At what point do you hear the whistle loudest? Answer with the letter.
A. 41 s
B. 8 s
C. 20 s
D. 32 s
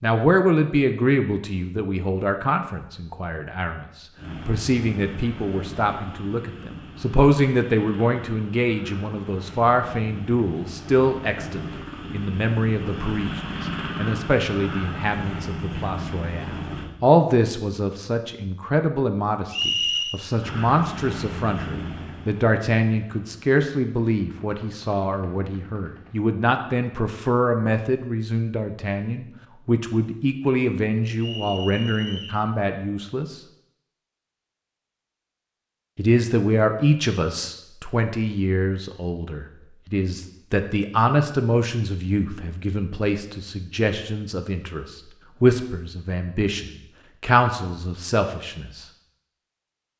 C.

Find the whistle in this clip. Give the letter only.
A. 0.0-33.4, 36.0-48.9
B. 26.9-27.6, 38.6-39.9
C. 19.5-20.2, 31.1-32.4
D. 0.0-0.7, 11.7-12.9
C.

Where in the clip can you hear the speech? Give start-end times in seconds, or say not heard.
0.0-33.4, 36.0-48.9.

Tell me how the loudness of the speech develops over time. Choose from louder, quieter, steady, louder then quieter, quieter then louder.
steady.